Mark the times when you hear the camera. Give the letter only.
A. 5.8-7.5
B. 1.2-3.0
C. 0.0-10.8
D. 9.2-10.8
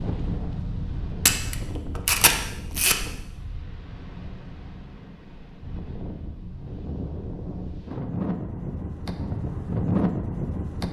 B.